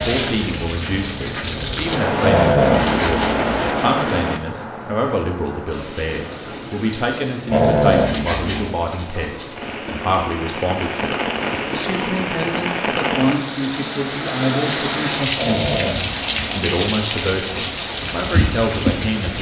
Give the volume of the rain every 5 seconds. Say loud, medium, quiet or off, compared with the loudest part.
loud, medium, loud, loud.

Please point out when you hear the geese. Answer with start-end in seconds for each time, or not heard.
not heard.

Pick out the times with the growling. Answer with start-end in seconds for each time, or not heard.
2.2-3.7, 7.5-8.8, 15.3-16.6.